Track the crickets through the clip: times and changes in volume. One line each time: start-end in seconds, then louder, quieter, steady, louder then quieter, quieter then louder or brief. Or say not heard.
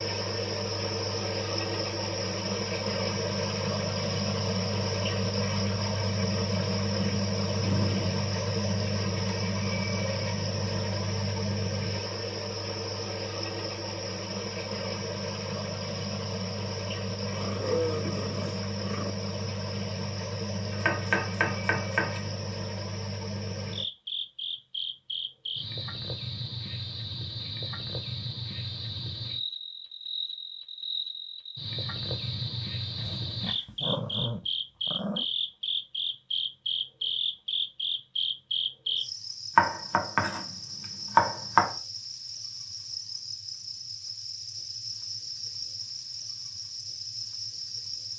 0.0-48.1 quieter.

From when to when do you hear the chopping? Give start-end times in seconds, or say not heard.
20.7-22.3, 39.5-41.8.